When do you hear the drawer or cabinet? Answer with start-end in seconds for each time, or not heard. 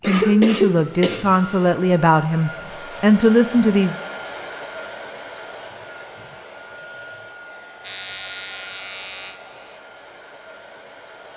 not heard.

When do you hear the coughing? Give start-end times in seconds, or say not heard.
0.0-1.7.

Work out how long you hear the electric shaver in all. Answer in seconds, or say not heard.
2 s.